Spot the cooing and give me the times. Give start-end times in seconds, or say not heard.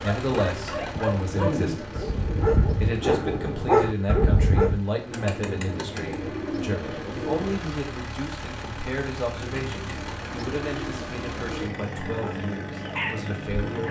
0.4-2.5, 5.1-7.7, 9.3-12.0.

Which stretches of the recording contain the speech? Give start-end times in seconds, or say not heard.
0.0-13.8.